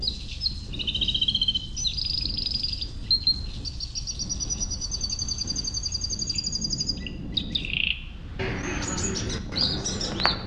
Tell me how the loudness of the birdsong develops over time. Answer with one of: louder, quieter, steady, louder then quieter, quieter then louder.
steady.